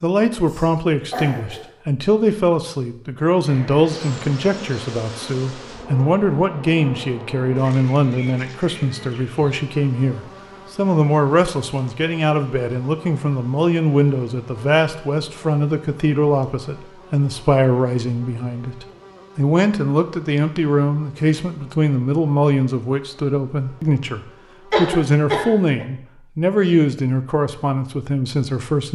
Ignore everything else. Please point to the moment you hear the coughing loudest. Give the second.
25 s.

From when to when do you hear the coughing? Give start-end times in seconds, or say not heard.
0.3-1.7, 24.7-25.9.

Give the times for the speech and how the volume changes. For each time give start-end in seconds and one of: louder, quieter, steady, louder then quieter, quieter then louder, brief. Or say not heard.
0.0-28.9 steady.